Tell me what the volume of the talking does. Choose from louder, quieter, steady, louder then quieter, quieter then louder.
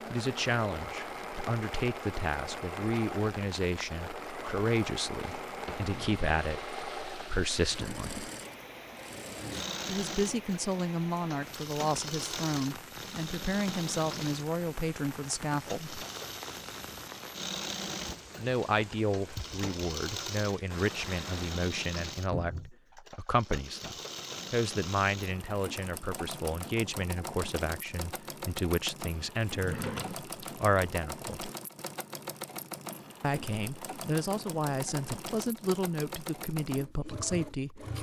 steady.